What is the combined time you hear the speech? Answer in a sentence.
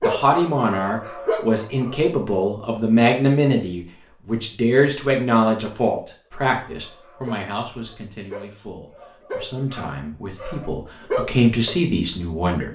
You can hear the speech for 13 seconds altogether.